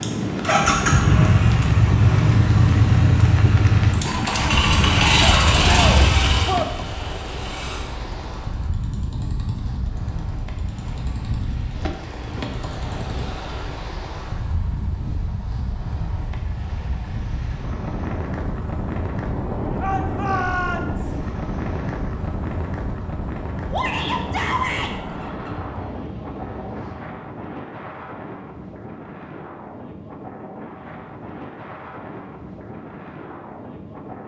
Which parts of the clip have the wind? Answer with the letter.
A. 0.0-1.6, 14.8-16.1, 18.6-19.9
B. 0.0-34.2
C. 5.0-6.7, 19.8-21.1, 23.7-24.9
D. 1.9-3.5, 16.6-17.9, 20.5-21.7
B.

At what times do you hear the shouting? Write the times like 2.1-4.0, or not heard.
5.0-6.7, 19.8-21.1, 23.7-24.9.